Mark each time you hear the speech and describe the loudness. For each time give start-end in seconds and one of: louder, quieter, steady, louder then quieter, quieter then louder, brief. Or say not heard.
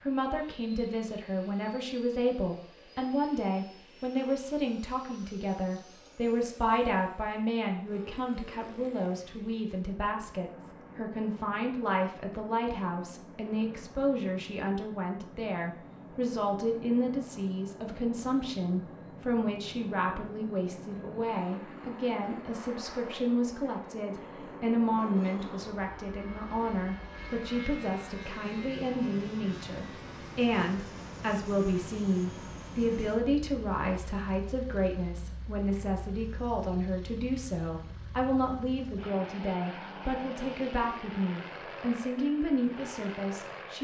0.0-43.7 steady.